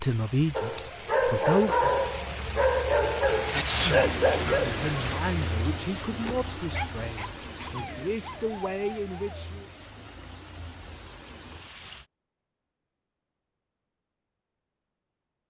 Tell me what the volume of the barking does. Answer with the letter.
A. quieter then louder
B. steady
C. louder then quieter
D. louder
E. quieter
E.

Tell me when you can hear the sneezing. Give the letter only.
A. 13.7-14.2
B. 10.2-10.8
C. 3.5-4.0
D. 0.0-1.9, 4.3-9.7
C.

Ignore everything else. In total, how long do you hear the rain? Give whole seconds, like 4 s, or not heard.
12 s.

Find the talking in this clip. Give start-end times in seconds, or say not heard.
0.0-1.9, 4.3-9.7.